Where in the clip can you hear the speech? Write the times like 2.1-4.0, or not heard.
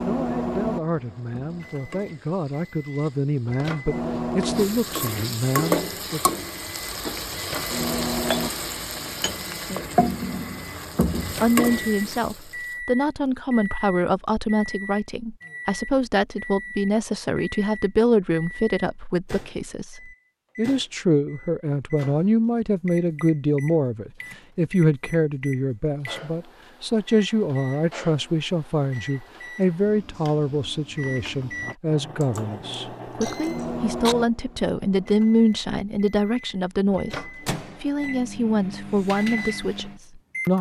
0.0-6.2, 11.4-40.5.